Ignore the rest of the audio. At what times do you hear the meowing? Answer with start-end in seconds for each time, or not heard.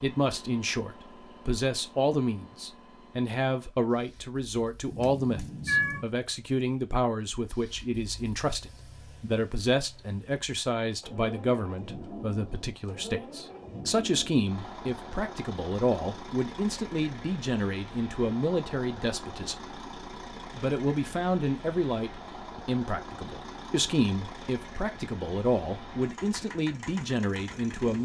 4.9-6.0.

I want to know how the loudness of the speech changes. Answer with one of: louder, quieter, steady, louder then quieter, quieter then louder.
steady.